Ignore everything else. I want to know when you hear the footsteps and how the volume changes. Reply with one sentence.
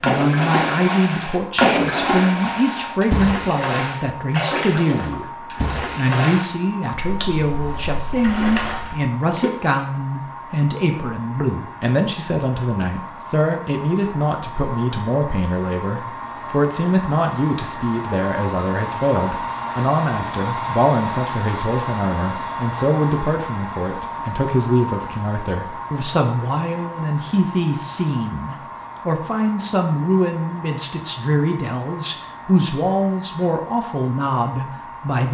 The footsteps can't be heard in this clip.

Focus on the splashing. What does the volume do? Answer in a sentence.
The volume of the splashing goes down.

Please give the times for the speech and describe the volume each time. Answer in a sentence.
The speech can be heard from 0.0 to 35.3 s, at a steady volume.